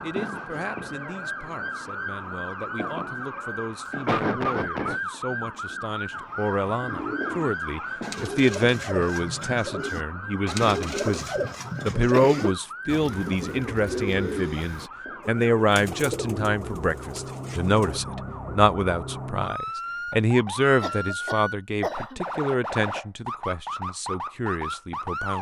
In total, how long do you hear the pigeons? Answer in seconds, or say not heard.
12 s.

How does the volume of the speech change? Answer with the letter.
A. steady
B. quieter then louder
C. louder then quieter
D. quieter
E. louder
E.